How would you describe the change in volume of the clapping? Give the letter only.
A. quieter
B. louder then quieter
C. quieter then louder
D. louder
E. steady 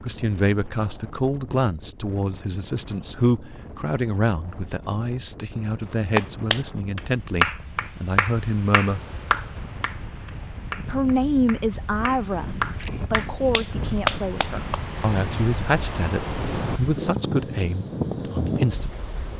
C.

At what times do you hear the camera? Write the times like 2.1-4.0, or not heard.
not heard.